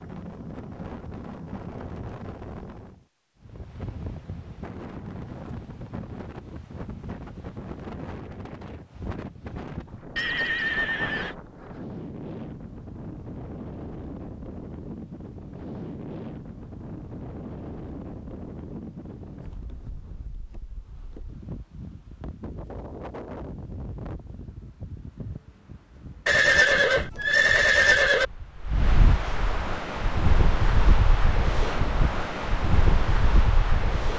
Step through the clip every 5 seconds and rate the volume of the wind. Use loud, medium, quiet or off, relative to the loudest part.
medium, medium, medium, medium, quiet, medium, loud.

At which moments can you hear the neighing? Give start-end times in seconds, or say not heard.
10.2-11.3, 26.2-28.2.